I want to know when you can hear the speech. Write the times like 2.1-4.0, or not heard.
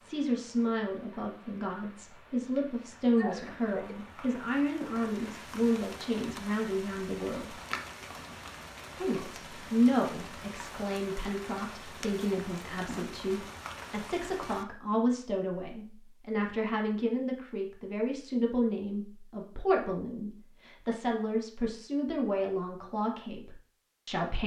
0.0-7.5, 8.9-24.4.